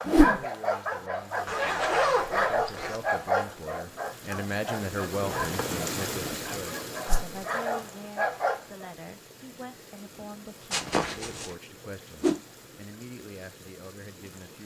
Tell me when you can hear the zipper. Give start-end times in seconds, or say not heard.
1.4-3.0, 5.2-5.8, 10.7-11.5.